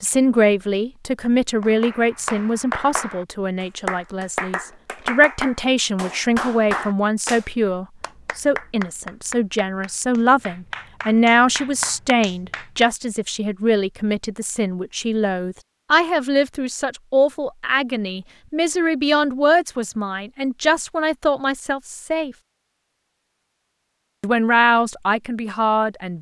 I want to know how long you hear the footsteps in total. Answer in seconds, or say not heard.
not heard.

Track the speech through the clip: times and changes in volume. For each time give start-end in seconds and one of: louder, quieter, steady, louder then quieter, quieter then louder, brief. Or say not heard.
0.0-22.4 steady
24.2-26.1 brief.